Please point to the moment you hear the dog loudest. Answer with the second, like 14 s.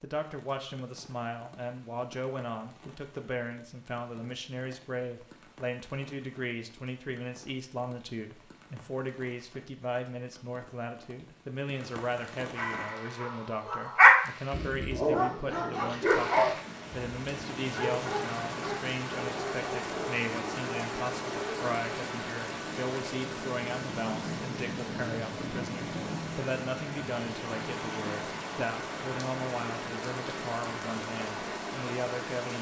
14 s.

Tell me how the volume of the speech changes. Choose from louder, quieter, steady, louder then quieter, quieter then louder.
steady.